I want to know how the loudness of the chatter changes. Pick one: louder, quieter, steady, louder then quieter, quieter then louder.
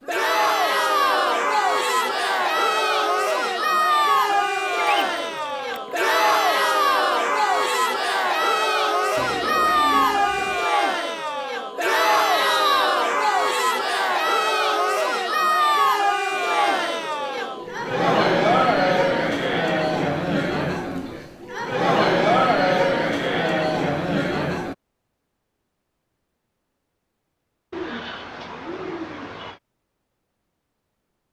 steady.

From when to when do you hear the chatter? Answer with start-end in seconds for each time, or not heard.
0.1-24.8.